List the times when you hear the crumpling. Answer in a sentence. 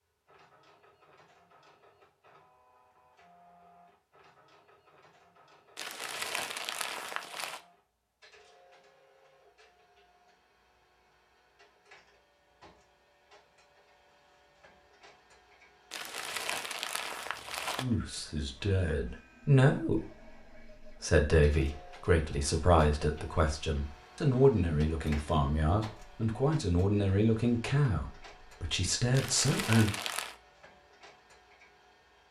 You can hear the crumpling from 5.8 to 7.6 s, from 15.9 to 17.9 s and from 29.1 to 30.4 s.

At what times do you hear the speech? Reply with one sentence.
The speech can be heard from 17.8 to 29.9 s.